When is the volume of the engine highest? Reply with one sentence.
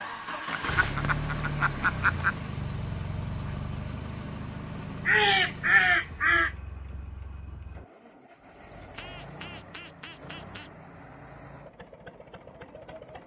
The volume of the engine peaks at 1 second.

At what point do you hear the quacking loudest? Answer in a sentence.
The loudest moment of the quacking is at 6 seconds.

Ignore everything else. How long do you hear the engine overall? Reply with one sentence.
The engine can be heard for 13 seconds in total.